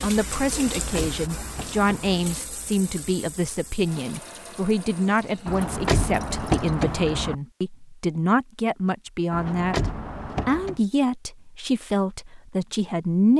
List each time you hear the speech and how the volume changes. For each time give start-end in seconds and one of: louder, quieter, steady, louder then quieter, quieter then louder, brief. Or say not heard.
0.0-13.3 steady.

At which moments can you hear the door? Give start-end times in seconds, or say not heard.
0.8-2.1, 5.5-7.3, 9.3-10.8.